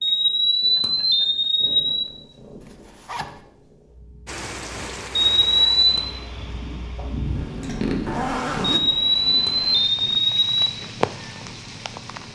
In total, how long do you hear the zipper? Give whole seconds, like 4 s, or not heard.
2 s.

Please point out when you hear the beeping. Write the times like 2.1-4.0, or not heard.
0.0-2.1, 5.3-6.1, 8.7-10.8.